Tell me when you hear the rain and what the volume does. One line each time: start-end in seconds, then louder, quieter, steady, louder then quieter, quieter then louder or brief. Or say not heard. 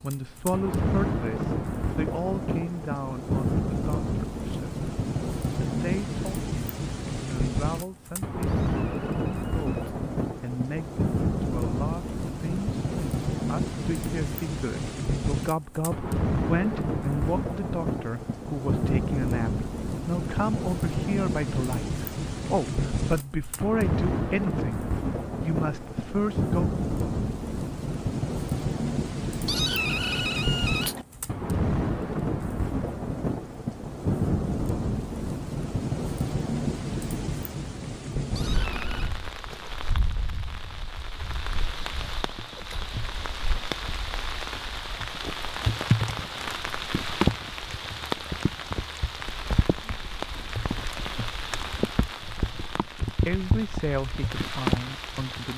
0.0-55.5 steady.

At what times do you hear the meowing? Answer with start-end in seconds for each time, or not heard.
8.4-10.1, 29.4-31.1, 38.3-39.1.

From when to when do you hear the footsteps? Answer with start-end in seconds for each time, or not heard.
not heard.